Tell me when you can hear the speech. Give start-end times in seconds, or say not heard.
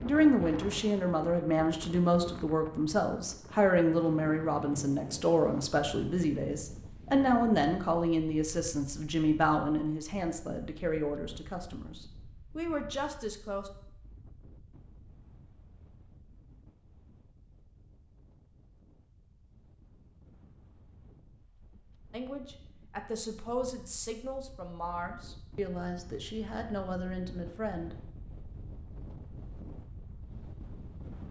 0.0-13.7, 22.1-27.9.